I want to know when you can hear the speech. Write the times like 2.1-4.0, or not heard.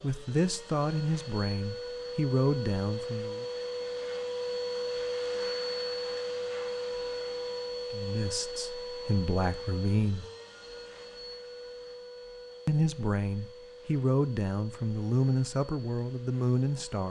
0.0-3.5, 7.9-10.2, 12.7-17.0.